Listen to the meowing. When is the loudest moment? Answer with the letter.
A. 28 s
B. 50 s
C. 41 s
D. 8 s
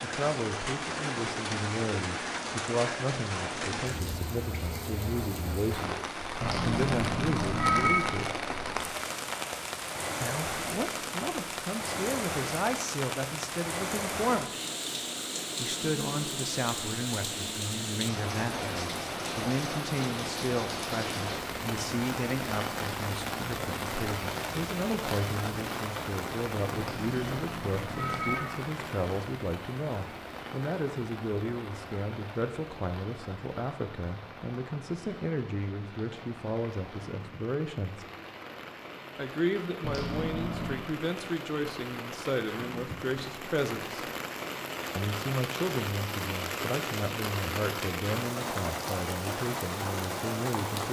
D.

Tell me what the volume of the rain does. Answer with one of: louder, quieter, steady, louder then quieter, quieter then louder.
quieter then louder.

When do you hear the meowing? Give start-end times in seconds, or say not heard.
6.4-8.1, 26.8-28.6, 39.8-40.9.